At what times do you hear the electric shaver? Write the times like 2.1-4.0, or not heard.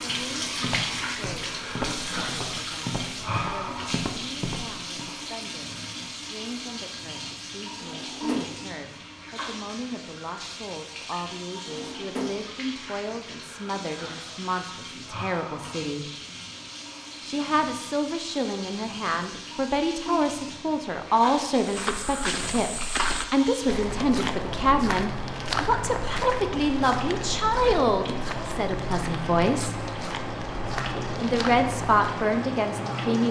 not heard.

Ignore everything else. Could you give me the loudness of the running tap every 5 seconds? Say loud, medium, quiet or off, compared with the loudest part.
loud, medium, medium, medium, medium, loud, loud.